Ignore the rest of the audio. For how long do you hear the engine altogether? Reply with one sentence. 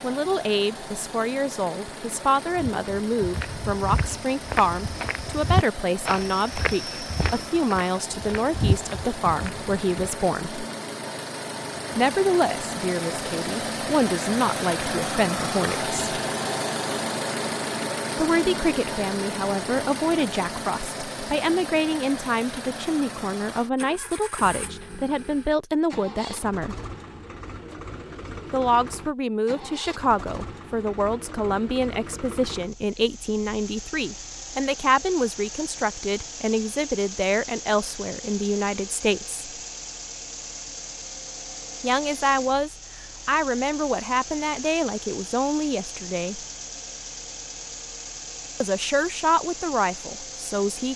You can hear the engine for 51 seconds altogether.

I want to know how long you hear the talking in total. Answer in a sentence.
You can hear the talking for 41 seconds altogether.